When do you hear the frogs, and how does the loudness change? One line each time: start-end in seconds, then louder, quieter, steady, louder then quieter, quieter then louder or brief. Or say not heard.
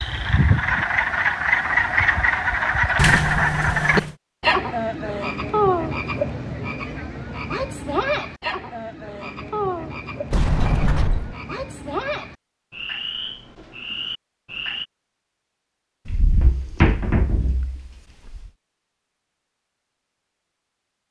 0.0-14.8 quieter.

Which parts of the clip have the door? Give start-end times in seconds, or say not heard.
3.0-4.2, 10.3-11.3, 16.1-18.4.